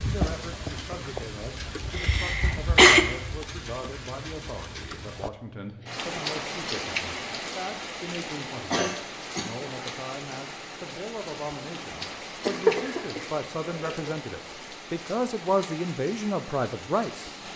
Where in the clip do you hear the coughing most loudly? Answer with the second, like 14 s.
3 s.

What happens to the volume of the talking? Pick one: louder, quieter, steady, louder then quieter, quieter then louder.
louder.